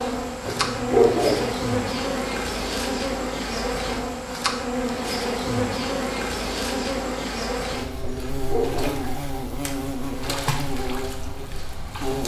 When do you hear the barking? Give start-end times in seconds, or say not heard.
0.5-1.6, 8.0-9.1.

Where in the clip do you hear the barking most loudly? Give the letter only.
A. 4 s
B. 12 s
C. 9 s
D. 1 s
D.